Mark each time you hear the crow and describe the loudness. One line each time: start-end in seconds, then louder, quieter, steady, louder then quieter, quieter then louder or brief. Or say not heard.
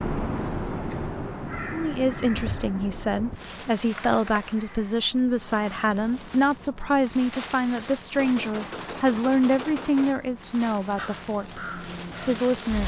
0.0-5.0 quieter
10.9-12.8 brief.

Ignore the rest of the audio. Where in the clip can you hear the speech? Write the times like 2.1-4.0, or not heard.
1.7-12.8.